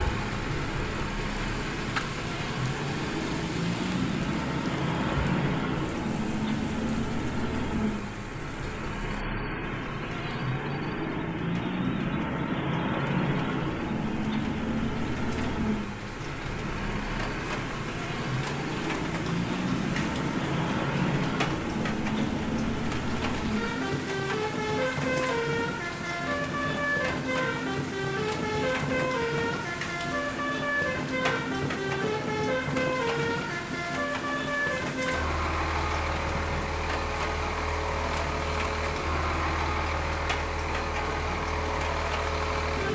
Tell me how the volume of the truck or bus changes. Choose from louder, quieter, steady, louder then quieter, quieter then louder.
steady.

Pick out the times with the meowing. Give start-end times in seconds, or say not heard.
not heard.